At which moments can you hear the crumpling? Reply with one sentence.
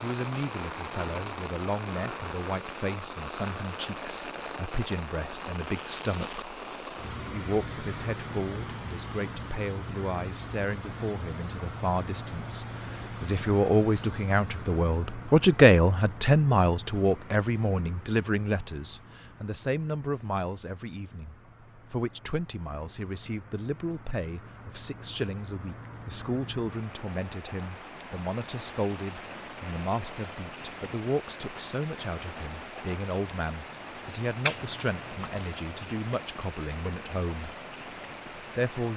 The crumpling can be heard from 34.5 to 35.5 s.